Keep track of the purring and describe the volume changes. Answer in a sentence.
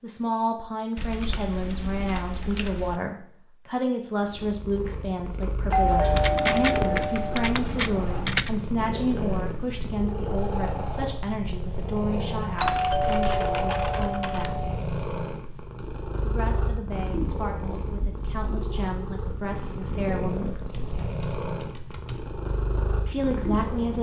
The loudness of the purring stays about the same.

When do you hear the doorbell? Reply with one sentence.
You can hear the doorbell from 5.7 to 7.5 s and from 12.6 to 14.8 s.